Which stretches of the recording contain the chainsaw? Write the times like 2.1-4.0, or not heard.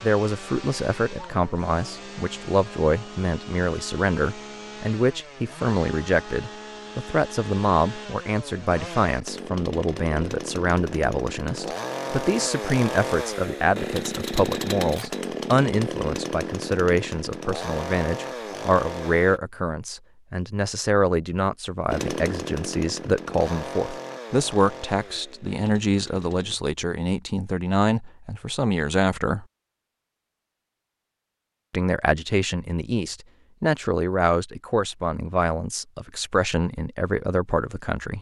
0.0-19.4, 21.9-26.6.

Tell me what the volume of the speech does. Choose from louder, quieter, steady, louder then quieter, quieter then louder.
steady.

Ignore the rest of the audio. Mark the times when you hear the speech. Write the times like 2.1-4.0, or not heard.
0.0-29.4, 31.7-38.1.